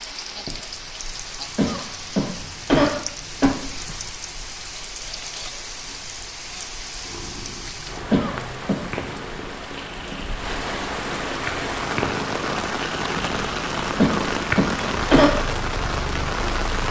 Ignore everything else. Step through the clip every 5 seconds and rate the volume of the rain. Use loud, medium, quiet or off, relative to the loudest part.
medium, medium, loud, loud.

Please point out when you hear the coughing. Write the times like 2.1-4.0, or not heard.
1.6-3.5, 8.1-8.8, 13.9-15.3.